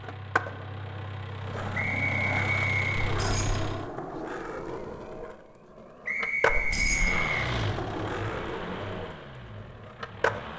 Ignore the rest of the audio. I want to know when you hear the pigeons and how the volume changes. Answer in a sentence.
You can't hear the pigeons here.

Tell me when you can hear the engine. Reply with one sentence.
You can hear the engine from 0.0 to 3.9 s and from 6.8 to 10.5 s.